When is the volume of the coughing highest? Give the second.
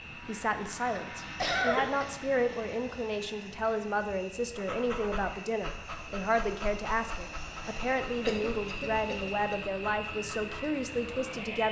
2 s.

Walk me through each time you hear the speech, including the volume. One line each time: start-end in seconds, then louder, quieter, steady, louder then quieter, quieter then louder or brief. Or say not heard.
0.2-11.6 steady.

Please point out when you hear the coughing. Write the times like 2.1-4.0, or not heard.
1.2-2.0, 7.8-9.6.